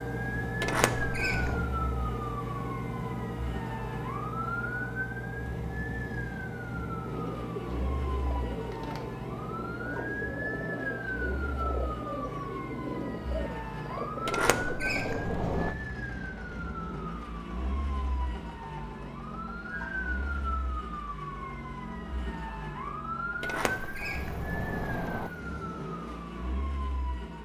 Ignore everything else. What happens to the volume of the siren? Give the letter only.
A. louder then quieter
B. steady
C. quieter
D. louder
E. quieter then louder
B.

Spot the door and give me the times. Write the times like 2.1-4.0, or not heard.
0.6-1.6, 14.2-15.8, 23.4-25.3.